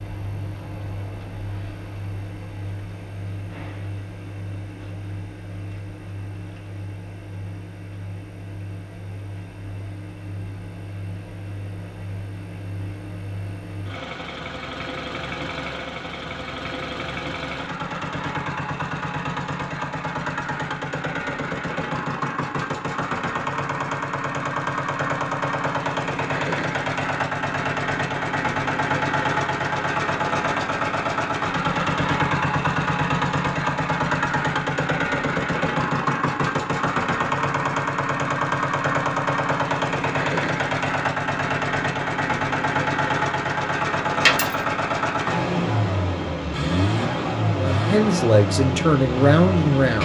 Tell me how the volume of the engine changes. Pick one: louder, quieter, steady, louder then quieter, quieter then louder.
louder.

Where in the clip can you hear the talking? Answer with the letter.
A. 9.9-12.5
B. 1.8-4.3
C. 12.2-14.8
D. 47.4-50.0
D.